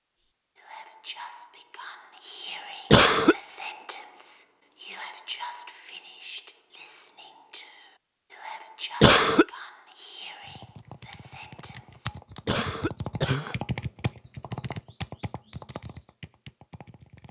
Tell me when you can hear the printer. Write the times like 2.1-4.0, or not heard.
not heard.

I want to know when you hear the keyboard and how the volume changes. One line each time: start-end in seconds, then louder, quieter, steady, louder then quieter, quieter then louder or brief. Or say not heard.
10.4-17.2 louder then quieter.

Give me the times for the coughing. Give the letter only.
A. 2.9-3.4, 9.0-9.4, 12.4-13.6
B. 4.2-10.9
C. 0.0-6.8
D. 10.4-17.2
A.